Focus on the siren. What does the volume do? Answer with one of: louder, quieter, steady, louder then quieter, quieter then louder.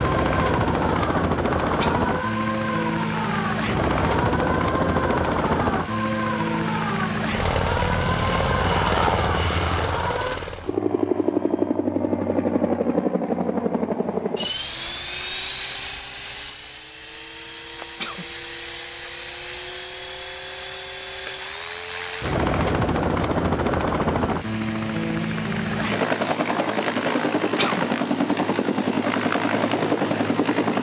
steady.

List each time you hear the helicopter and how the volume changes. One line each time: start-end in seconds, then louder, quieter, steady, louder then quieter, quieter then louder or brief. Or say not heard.
0.0-30.7 steady.